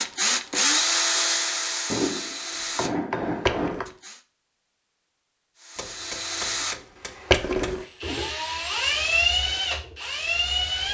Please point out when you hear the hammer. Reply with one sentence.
You can hear the hammer from 1.9 to 3.9 s and from 5.8 to 7.8 s.